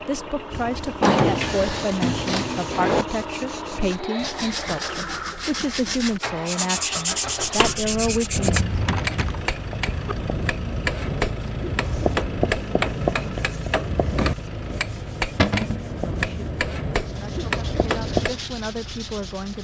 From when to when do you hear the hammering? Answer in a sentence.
The hammering can be heard from 7.4 to 18.4 s.